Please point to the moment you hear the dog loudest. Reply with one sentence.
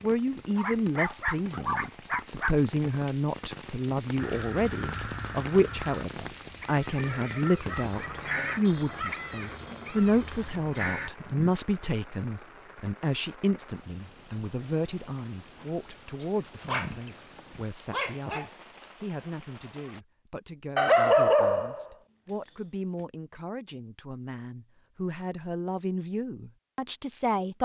The volume of the dog peaks at 21 seconds.